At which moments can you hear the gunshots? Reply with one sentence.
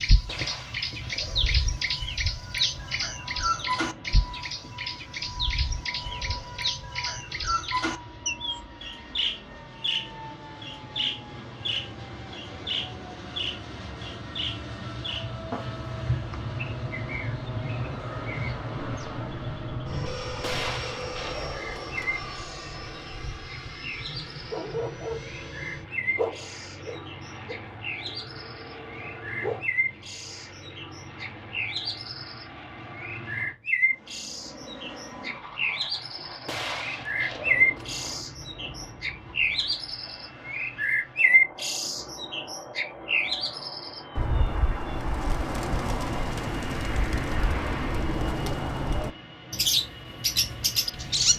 The gunshots can be heard from 0.2 to 1.9 s, from 20.4 to 22.1 s and from 36.5 to 38.2 s.